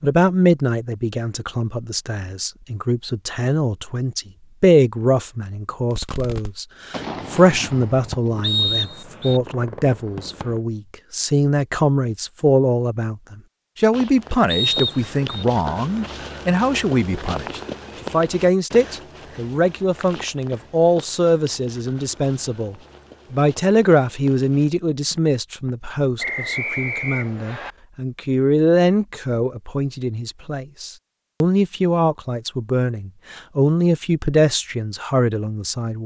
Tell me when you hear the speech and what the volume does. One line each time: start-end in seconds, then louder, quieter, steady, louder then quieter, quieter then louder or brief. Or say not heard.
0.0-36.0 steady.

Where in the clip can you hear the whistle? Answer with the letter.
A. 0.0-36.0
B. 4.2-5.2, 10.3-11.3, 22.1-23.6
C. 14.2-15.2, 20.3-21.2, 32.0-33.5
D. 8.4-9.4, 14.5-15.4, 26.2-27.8
D.